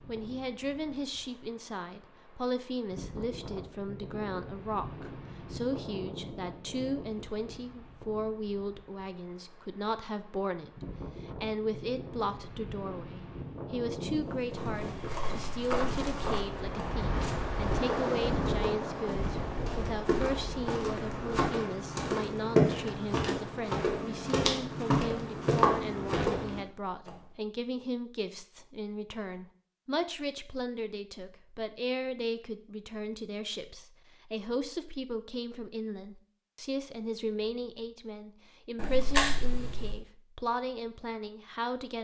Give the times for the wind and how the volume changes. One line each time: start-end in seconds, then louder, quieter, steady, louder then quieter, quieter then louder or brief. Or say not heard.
0.0-21.4 louder.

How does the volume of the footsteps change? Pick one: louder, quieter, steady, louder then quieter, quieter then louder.
louder.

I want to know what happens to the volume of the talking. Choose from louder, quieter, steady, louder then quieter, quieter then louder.
steady.